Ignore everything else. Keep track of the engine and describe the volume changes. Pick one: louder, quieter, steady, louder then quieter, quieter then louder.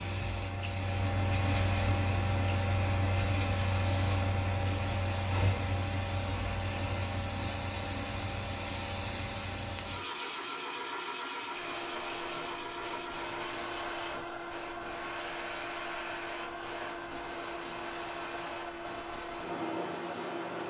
quieter.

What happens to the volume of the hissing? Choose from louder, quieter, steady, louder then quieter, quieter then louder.
steady.